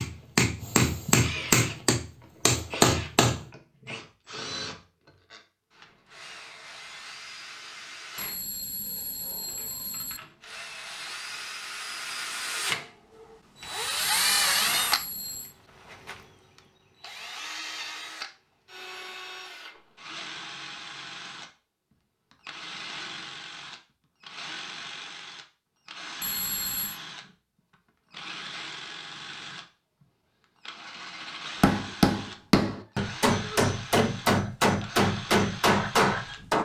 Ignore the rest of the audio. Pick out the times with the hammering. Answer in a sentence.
You can hear the hammering from 0.0 to 3.5 s and from 31.6 to 36.5 s.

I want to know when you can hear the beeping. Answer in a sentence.
The beeping can be heard from 8.2 to 10.2 s, from 13.9 to 15.6 s and from 26.2 to 27.0 s.